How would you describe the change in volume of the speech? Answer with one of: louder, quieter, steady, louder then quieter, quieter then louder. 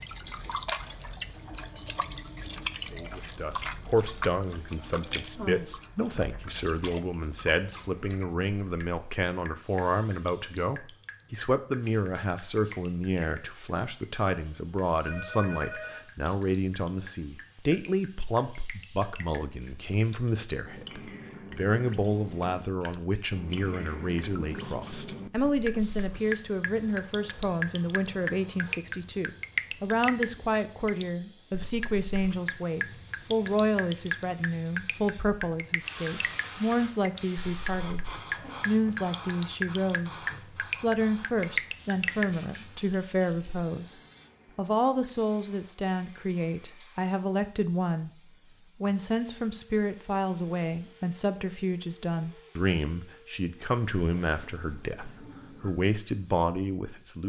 steady.